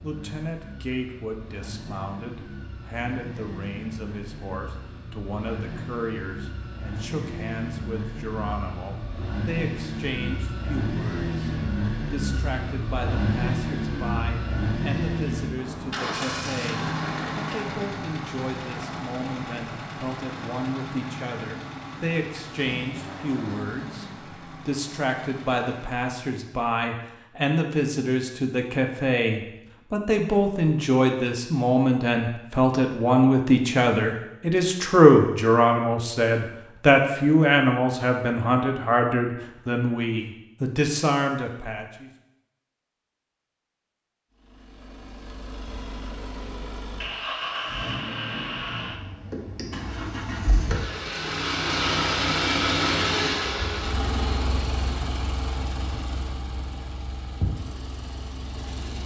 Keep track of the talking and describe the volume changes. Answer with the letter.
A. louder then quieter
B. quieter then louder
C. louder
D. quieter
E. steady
C.